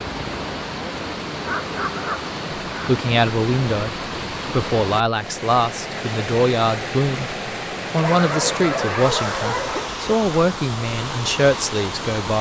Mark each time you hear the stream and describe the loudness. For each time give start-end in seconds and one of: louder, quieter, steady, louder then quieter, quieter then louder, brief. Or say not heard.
0.0-12.3 steady.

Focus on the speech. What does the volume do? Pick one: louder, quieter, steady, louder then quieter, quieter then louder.
steady.